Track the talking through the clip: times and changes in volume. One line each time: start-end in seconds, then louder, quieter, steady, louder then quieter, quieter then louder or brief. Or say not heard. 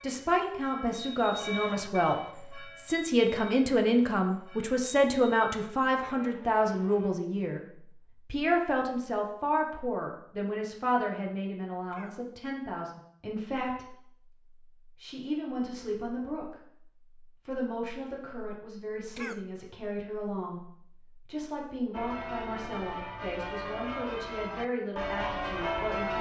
0.0-26.1 quieter.